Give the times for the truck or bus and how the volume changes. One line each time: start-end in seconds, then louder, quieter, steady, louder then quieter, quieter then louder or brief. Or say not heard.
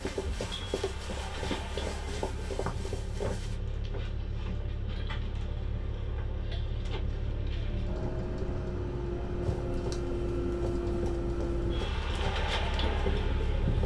0.0-13.8 louder.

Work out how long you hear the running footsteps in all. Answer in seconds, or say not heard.
8 s.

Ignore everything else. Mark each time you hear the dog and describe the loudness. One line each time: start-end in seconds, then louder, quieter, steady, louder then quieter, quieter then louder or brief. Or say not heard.
not heard.